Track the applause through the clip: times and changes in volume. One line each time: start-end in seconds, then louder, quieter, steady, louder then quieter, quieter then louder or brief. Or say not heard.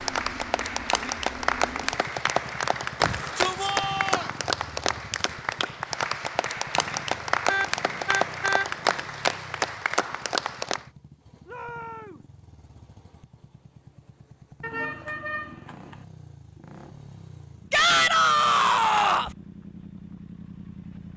0.0-10.8 steady.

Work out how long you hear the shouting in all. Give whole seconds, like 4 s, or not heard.
4 s.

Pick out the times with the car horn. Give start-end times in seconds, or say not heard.
7.5-8.7, 14.6-16.1.